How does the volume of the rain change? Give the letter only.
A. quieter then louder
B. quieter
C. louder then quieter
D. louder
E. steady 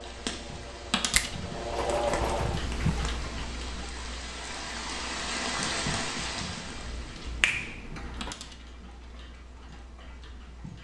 D.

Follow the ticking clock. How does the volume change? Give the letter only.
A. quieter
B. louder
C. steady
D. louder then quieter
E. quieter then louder
D.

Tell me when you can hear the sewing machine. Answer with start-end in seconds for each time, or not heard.
0.0-2.6.